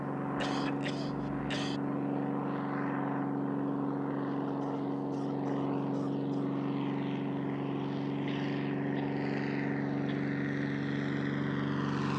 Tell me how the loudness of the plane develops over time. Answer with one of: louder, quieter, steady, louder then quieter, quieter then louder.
steady.